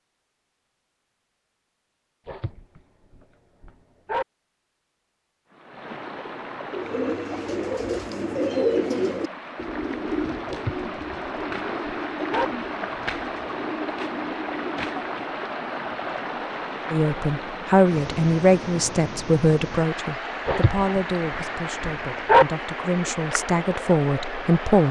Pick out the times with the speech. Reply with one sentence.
You can hear the speech from 16.9 to 24.8 s.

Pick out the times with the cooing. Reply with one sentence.
You can hear the cooing from 6.7 to 15.5 s.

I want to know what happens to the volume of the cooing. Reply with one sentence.
The volume of the cooing goes down.